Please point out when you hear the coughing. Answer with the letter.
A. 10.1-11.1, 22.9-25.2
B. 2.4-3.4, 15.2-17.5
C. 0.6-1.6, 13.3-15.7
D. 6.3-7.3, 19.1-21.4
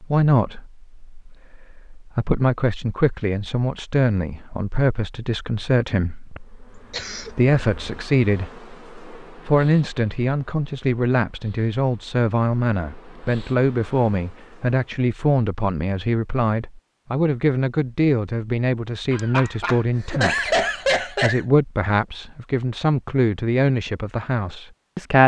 D.